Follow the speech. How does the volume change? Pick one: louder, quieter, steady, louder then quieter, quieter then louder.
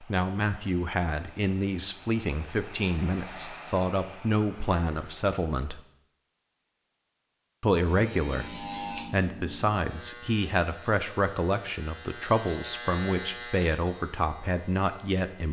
steady.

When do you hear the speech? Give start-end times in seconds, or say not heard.
0.0-5.8, 7.6-15.4.